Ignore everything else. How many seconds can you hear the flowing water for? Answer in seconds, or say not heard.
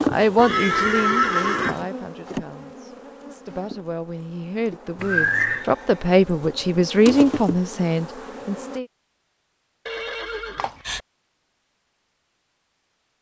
not heard.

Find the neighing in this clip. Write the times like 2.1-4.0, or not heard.
0.3-1.9, 5.0-5.7, 9.8-11.0.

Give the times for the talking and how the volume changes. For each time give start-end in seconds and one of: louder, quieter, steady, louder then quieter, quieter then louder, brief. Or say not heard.
0.0-8.8 quieter then louder.